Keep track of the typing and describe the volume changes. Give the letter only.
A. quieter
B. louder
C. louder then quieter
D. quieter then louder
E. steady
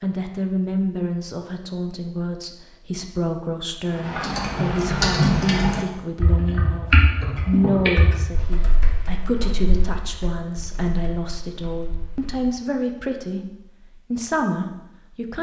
A.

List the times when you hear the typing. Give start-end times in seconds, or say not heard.
4.0-12.3.